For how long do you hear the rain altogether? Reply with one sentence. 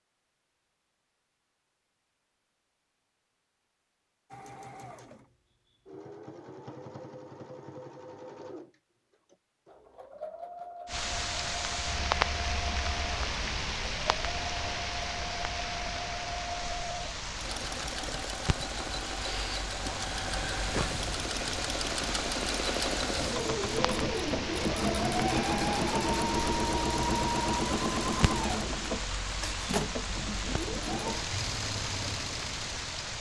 You can hear the rain for 22 seconds altogether.